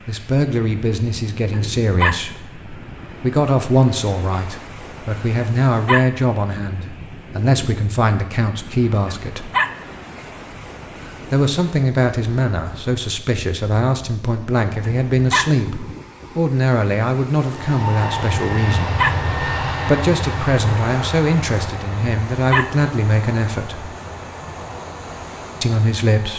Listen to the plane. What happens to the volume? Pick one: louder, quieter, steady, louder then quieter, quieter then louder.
quieter.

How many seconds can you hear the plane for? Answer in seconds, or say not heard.
9 s.